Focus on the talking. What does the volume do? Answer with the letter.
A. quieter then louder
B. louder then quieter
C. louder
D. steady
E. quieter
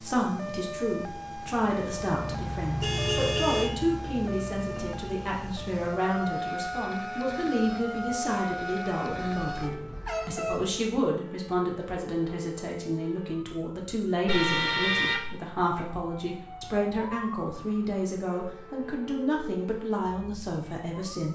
D.